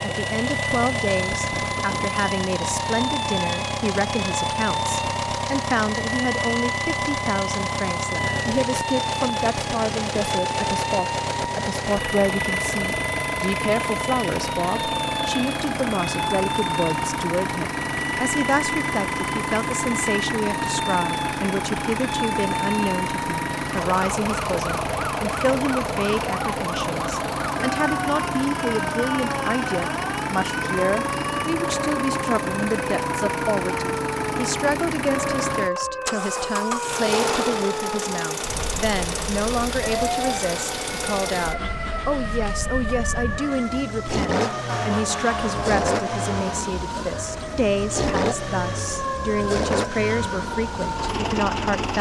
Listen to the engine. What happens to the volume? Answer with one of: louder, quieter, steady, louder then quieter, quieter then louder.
steady.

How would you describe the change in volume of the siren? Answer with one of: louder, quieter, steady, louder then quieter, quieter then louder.
steady.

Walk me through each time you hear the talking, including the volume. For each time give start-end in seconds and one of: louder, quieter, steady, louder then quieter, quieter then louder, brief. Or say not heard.
0.0-51.9 steady.